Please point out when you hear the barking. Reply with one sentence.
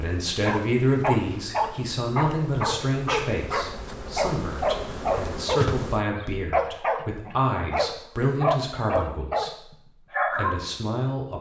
You can hear the barking from 0.5 to 10.7 s.